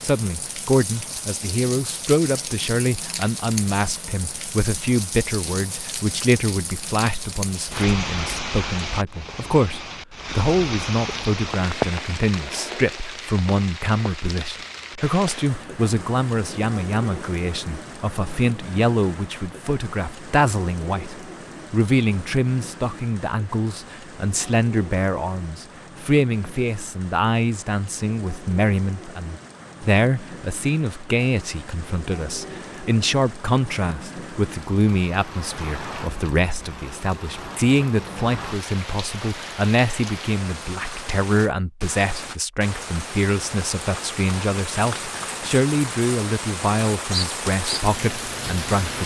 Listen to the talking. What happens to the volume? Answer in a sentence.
The volume of the talking stays about the same.